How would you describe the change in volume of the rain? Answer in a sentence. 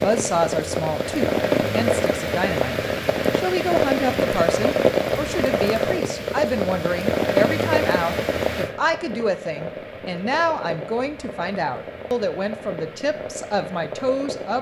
The loudness of the rain goes down.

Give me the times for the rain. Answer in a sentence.
You can hear the rain from 0.0 to 14.5 s.